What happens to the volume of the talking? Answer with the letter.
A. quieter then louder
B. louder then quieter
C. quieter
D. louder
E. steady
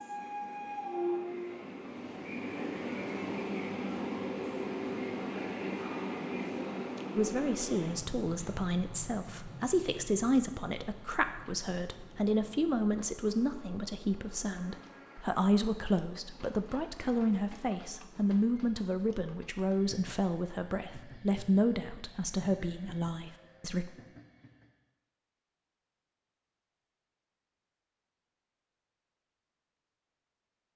E.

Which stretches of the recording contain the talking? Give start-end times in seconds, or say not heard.
7.2-23.9.